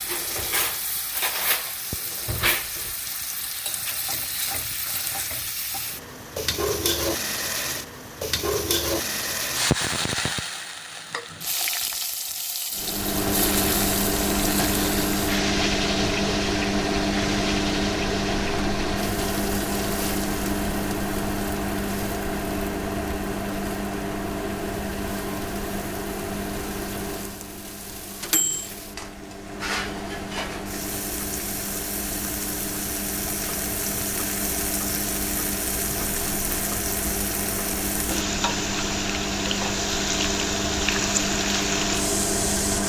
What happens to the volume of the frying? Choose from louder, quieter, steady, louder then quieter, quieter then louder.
quieter then louder.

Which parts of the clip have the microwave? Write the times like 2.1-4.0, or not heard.
12.7-42.8.